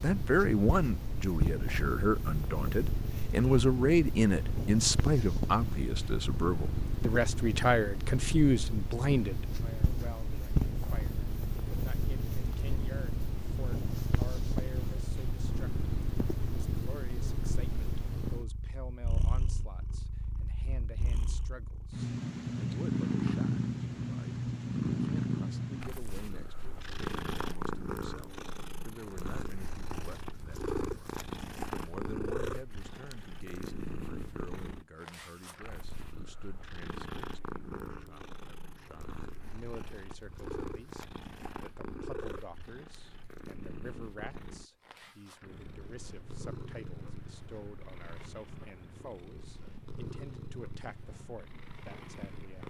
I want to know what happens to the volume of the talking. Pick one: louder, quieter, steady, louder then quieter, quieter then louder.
quieter.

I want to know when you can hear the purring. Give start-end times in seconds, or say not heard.
0.0-52.6.